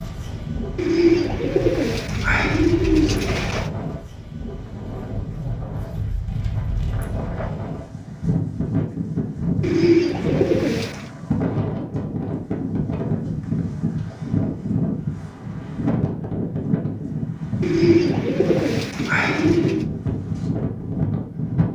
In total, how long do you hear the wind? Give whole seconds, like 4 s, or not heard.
22 s.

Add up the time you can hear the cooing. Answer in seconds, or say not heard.
7 s.